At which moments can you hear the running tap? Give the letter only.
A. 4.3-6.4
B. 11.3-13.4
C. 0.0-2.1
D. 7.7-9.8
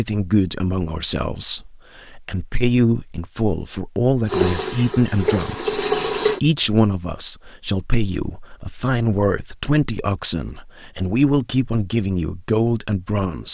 A.